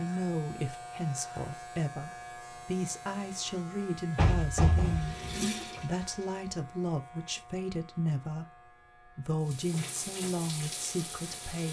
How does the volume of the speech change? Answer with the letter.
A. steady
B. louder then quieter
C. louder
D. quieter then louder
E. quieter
A.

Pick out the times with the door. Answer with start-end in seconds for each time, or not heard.
4.2-5.5.